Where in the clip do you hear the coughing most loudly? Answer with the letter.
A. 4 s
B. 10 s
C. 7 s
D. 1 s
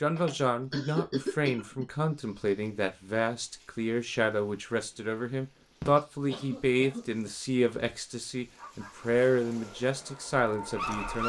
D.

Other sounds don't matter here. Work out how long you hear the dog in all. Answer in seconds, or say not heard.
3 s.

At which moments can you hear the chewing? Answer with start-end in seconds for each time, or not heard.
not heard.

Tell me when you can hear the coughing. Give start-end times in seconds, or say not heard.
0.1-1.9, 5.8-7.3.